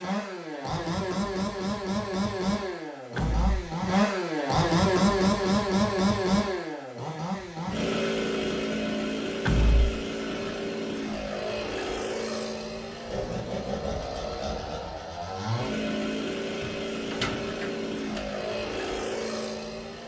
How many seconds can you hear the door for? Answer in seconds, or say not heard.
3 s.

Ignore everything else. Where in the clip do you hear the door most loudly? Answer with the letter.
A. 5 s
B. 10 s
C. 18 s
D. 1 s
B.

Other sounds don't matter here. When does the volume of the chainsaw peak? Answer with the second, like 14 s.
5 s.